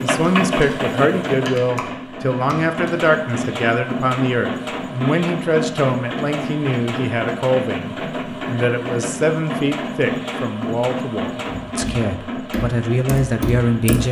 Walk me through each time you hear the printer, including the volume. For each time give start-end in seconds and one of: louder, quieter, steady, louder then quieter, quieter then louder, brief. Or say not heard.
0.0-14.0 steady.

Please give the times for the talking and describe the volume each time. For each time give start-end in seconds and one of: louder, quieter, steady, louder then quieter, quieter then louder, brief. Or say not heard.
0.0-14.0 steady.